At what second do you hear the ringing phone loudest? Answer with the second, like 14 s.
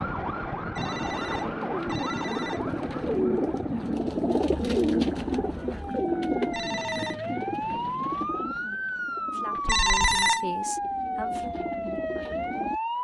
10 s.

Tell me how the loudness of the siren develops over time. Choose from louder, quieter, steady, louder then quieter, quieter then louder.
quieter then louder.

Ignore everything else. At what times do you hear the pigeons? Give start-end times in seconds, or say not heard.
0.9-12.8.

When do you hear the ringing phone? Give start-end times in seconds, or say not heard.
0.8-2.6, 6.5-7.2, 9.7-10.4.